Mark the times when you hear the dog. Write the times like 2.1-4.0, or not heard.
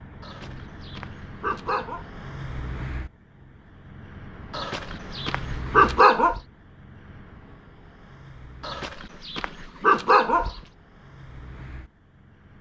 0.2-2.0, 4.5-6.4, 8.6-10.6.